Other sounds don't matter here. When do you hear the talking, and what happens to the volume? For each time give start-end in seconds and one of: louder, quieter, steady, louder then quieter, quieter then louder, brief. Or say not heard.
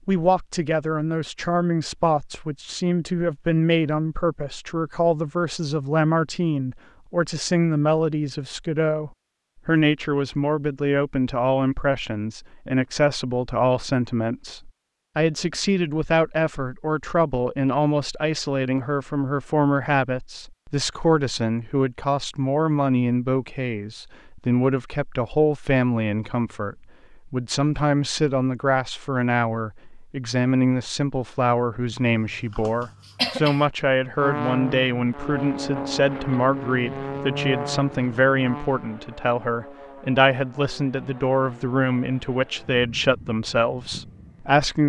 0.1-44.8 steady.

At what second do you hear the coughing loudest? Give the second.
33 s.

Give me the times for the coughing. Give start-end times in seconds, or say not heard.
32.1-33.6.